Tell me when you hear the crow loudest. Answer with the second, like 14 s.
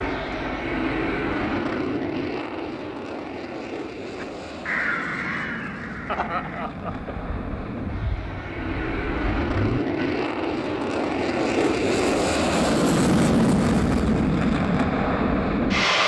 5 s.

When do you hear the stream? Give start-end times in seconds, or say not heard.
not heard.